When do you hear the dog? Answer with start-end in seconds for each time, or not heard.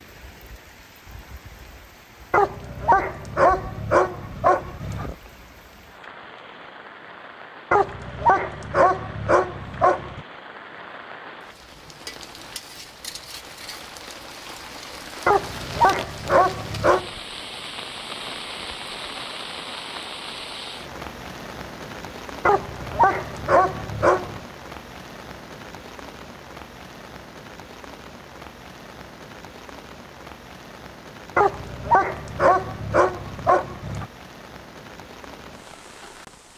2.3-5.2, 7.7-10.2, 15.2-17.1, 22.4-24.4, 31.4-34.0.